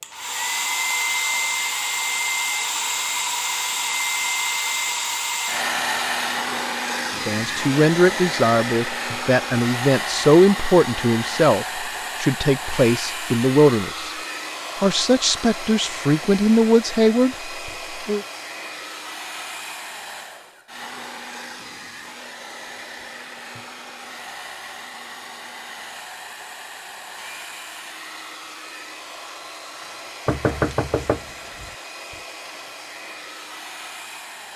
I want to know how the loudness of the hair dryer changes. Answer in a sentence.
The loudness of the hair dryer goes down.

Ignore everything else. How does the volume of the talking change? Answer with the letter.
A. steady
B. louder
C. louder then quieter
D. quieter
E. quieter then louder
A.